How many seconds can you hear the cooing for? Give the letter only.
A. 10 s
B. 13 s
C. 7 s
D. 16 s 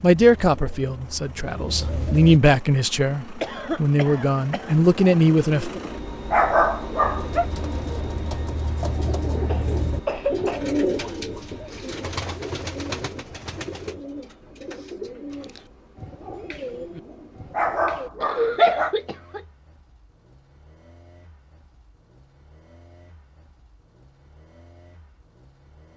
B.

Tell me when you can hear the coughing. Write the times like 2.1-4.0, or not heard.
3.4-4.8, 9.4-10.7, 18.2-19.4.